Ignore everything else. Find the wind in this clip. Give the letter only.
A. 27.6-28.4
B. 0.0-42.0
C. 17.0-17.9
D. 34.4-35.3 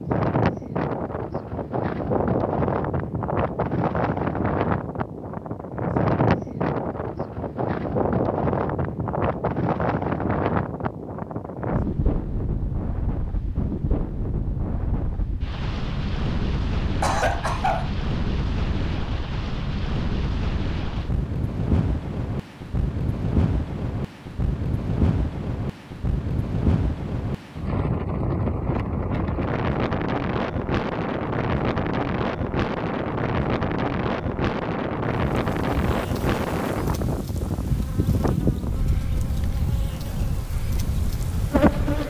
B.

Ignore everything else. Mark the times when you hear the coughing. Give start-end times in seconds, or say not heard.
17.0-17.9.